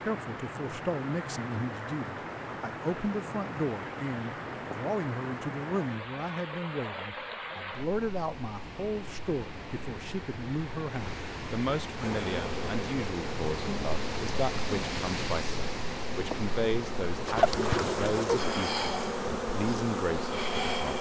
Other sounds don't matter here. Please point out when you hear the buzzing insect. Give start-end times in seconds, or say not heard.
11.9-20.9.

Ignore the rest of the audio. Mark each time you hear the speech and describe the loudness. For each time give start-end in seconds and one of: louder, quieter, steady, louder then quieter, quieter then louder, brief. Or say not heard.
0.0-20.9 steady.